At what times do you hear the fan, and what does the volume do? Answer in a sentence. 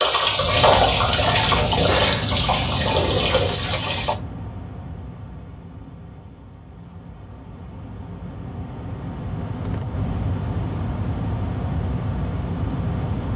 The fan can be heard from 0.1 to 13.3 s, getting quieter then louder.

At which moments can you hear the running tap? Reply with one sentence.
You can hear the running tap from 0.0 to 4.2 s.